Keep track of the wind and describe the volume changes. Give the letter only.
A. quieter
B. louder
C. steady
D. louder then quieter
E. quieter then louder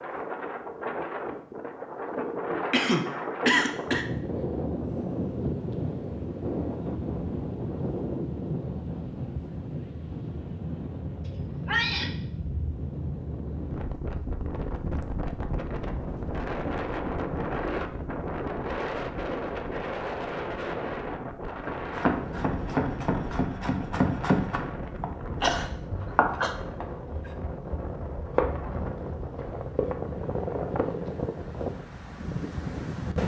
C.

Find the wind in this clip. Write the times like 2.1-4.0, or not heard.
0.0-33.2.